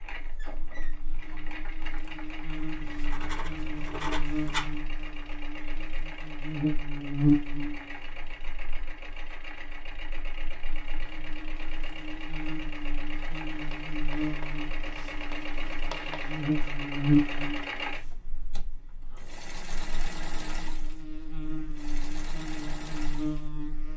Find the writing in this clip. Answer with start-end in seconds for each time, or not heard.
2.8-4.8, 13.9-16.4.